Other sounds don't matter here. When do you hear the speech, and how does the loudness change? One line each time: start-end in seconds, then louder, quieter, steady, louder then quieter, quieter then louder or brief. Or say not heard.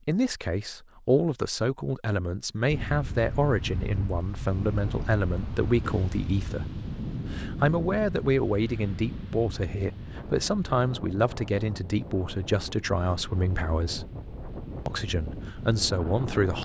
0.1-14.1 steady
14.8-16.5 brief.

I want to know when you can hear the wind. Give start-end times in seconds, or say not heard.
2.6-16.5.